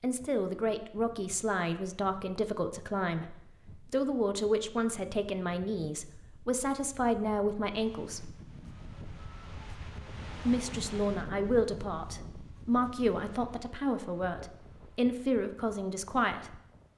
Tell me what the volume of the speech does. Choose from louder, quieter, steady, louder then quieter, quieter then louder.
steady.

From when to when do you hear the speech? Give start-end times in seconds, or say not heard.
0.0-8.3, 10.4-16.6.